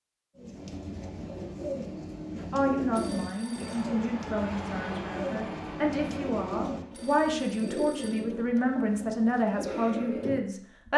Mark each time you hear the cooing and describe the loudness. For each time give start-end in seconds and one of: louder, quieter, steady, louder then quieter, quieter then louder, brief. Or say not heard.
0.3-10.4 steady.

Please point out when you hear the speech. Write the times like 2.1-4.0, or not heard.
2.5-10.9.